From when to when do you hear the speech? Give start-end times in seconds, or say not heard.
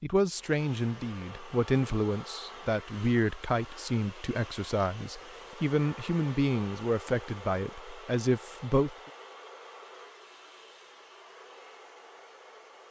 0.0-8.9.